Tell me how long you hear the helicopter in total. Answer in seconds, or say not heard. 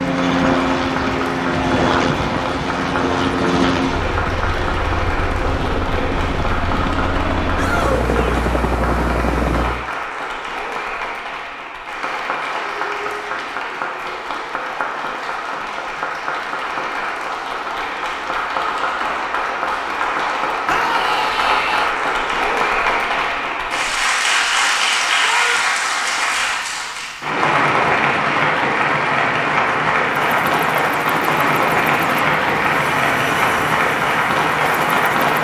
15 s.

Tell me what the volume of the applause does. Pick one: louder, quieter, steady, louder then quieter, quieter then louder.
louder.